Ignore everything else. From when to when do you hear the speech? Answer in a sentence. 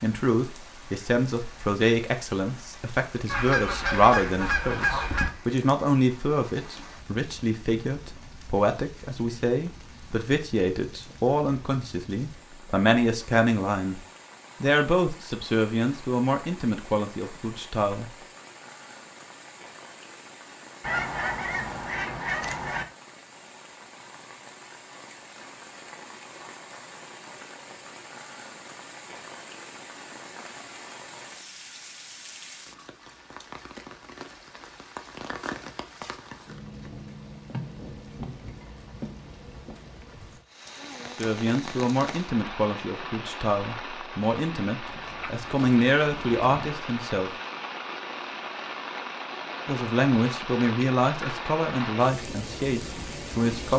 You can hear the speech from 0.0 to 14.0 s, from 14.6 to 18.1 s, from 41.1 to 47.3 s and from 49.6 to 53.7 s.